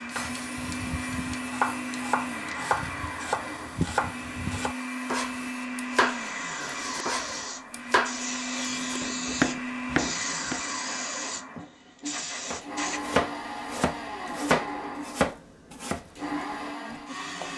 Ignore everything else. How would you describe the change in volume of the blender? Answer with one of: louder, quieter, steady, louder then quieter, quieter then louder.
steady.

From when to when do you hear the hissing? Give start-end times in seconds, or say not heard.
0.0-13.0.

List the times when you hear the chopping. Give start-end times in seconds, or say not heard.
0.1-10.6, 12.5-17.5.